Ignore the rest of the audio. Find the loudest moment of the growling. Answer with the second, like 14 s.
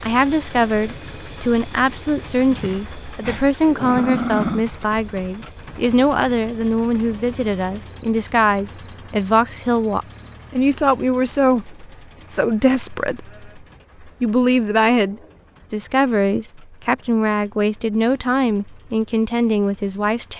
4 s.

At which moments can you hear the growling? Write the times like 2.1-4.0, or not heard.
2.3-4.8.